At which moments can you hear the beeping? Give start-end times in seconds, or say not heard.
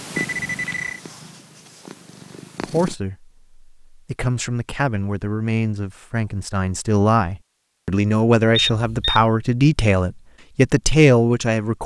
0.1-1.0, 8.5-9.2.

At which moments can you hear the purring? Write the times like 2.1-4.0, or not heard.
0.0-3.0.